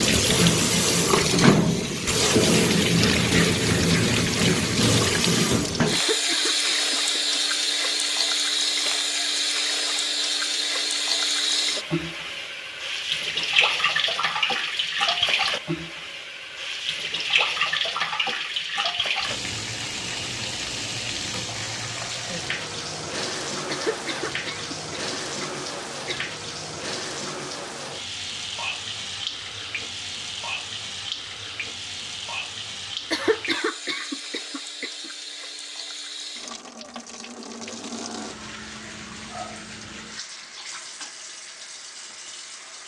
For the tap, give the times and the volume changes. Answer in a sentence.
The tap can be heard from 0.0 to 42.8 s, getting quieter.